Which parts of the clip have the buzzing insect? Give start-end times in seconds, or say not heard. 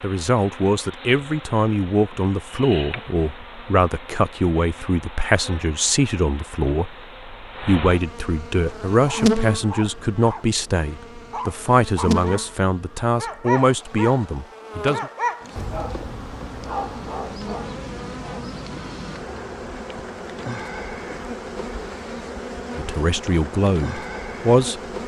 0.0-25.0.